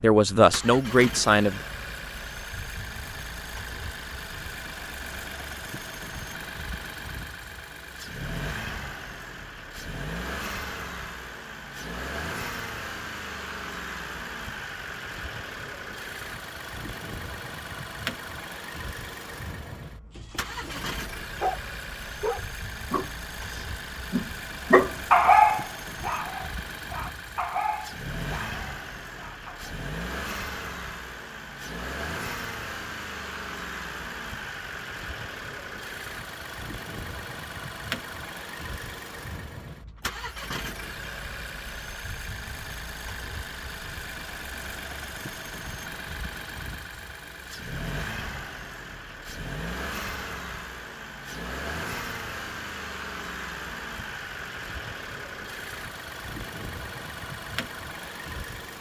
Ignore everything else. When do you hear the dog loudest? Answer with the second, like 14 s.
25 s.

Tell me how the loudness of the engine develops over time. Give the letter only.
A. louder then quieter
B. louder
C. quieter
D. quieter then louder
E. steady
E.